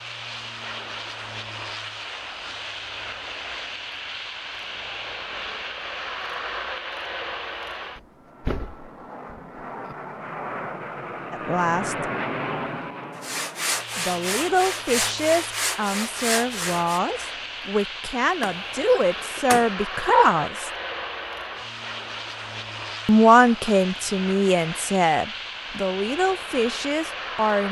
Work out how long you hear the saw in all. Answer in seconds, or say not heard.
4 s.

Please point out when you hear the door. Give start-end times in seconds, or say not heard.
8.0-9.9, 18.4-19.7.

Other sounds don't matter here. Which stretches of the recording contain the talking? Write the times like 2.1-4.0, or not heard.
11.3-12.1, 13.9-20.7, 23.1-27.6.